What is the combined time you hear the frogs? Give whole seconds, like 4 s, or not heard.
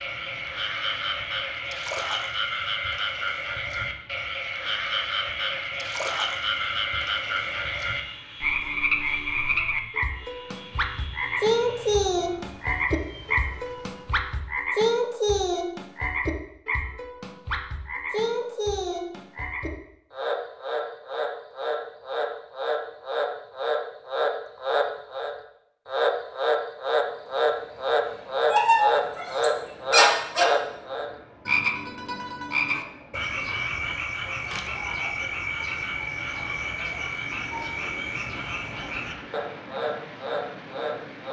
41 s.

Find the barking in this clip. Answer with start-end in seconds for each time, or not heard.
28.4-30.4.